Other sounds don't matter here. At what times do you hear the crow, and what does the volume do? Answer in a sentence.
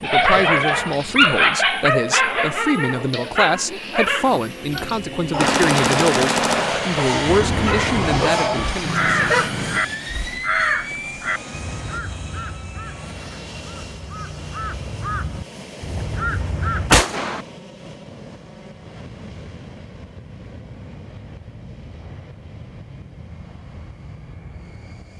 The crow can be heard from 7.2 to 16.9 s, getting quieter then louder.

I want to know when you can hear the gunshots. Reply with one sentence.
The gunshots can be heard from 5.3 to 7.0 s and from 16.9 to 17.4 s.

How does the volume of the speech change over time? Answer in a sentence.
The loudness of the speech stays about the same.